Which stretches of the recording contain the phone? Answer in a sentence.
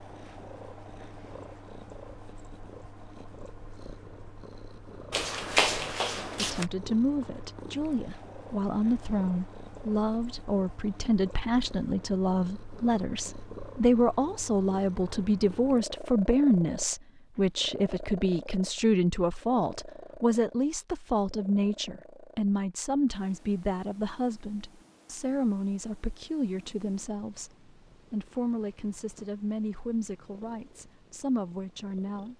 You can hear the phone from 5.1 to 6.7 s.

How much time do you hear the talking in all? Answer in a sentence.
The talking can be heard for 26 seconds in total.